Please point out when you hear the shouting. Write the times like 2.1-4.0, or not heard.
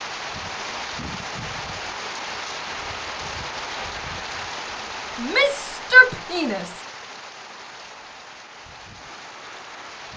5.2-6.8.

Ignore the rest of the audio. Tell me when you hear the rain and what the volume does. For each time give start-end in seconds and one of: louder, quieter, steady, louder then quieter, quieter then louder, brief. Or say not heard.
0.0-10.1 quieter.